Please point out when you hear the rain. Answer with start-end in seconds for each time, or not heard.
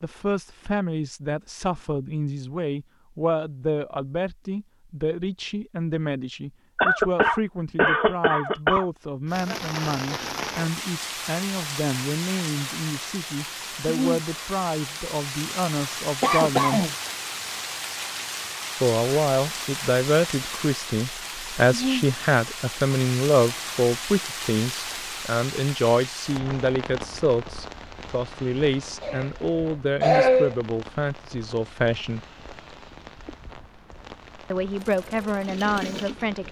9.2-36.4.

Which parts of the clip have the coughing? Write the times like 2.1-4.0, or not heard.
6.8-8.8, 16.2-16.9, 29.0-30.6.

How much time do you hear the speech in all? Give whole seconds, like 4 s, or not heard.
32 s.